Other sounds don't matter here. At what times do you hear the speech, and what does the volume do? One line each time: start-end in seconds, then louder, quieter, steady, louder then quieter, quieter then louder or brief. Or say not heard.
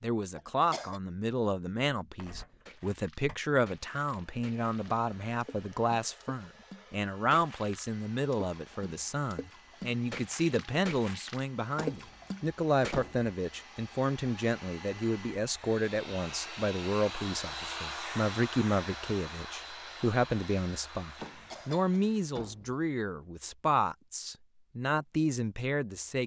0.0-26.2 steady.